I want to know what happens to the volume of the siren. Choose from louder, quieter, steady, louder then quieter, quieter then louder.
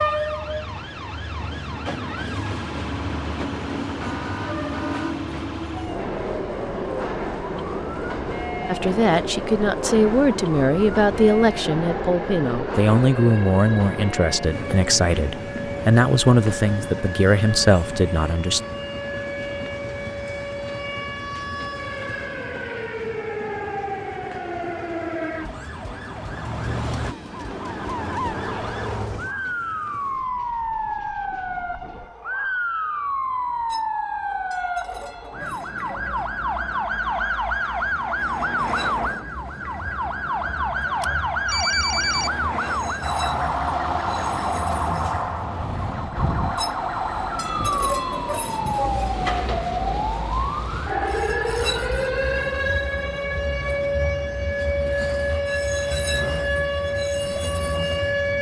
louder.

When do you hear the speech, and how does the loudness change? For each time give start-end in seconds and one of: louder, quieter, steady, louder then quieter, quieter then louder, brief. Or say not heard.
8.7-18.6 steady.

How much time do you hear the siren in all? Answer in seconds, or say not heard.
58 s.